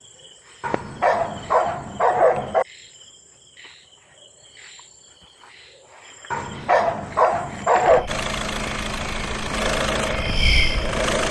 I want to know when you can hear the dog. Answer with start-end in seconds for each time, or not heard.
0.6-2.6, 6.3-8.1.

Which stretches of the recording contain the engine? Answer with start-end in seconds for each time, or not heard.
8.1-11.2.